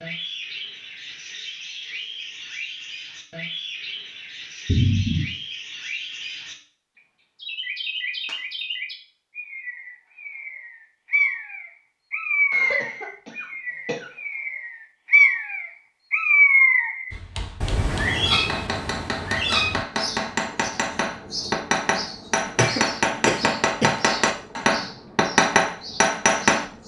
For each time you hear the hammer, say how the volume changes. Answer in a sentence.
You can hear the hammer from 17.1 to 26.6 s, getting louder.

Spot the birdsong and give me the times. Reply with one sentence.
You can hear the birdsong from 0.0 to 6.5 s and from 7.3 to 26.8 s.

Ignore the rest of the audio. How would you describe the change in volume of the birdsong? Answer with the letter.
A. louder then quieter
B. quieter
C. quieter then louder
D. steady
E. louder
A.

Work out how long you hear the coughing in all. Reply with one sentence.
You can hear the coughing for 4 seconds altogether.